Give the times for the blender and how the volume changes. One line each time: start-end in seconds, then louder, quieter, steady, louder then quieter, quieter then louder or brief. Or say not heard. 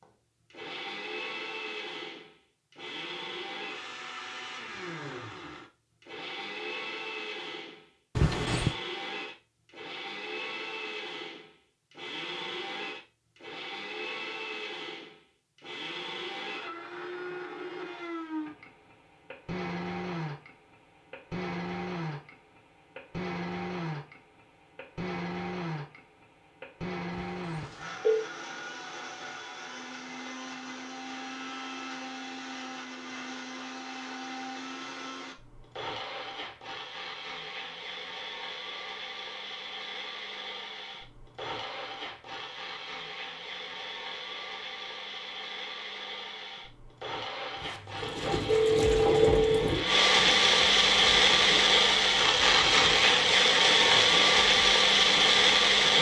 0.0-55.9 louder.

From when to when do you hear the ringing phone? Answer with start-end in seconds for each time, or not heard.
8.2-8.8, 27.1-28.2, 47.6-49.5.